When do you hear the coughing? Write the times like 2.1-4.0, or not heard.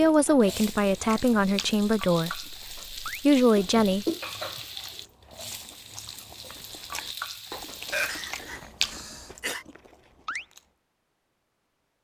3.5-4.2, 7.9-9.7.